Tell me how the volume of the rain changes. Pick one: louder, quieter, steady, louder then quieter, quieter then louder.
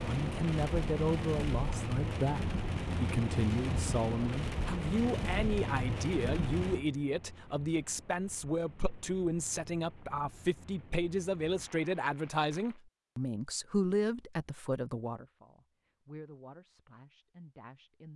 quieter.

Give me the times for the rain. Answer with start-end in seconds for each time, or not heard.
0.0-12.8.